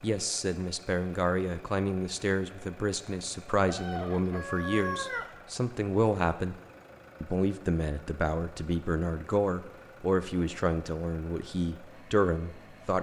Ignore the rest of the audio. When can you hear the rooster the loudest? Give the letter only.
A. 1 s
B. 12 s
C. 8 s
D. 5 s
D.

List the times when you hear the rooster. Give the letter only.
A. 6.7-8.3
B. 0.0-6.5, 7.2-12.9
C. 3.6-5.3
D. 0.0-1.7
C.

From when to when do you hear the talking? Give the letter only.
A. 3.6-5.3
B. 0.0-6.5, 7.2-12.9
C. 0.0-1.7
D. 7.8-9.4
B.